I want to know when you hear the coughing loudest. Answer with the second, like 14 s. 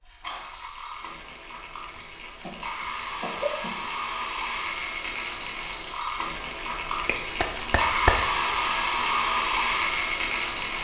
8 s.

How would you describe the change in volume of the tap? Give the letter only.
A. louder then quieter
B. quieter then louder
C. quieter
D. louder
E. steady
D.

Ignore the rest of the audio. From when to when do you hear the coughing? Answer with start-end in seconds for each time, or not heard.
1.9-3.9, 7.0-8.2.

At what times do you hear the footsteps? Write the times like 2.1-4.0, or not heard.
not heard.